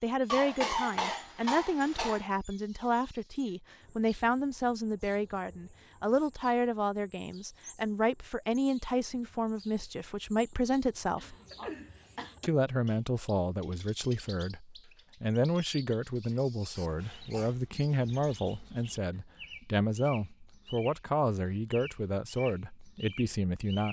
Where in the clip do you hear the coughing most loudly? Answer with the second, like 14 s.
1 s.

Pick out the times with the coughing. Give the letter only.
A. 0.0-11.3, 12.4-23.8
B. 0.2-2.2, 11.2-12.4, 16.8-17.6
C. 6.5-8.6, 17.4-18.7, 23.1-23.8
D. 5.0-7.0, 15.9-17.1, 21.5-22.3
B.